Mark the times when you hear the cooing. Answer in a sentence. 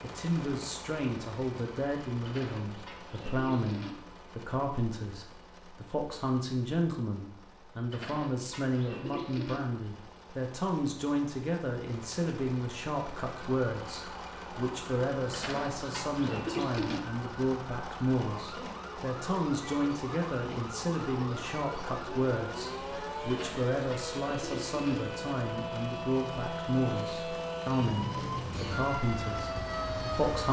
You can hear the cooing from 2.2 to 4.0 s, from 7.9 to 9.6 s, from 15.3 to 17.0 s and from 23.2 to 24.9 s.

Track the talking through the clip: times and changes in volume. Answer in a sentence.
You can hear the talking from 0.0 to 30.4 s, at a steady volume.